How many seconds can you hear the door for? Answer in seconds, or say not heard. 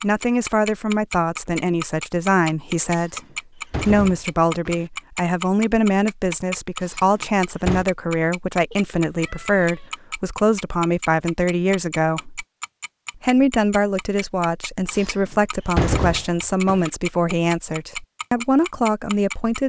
5 s.